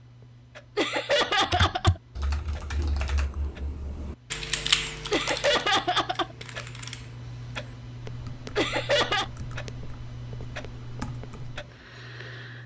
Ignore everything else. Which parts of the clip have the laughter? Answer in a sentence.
The laughter can be heard from 0.8 to 2.0 s, from 5.1 to 6.3 s and from 8.6 to 9.2 s.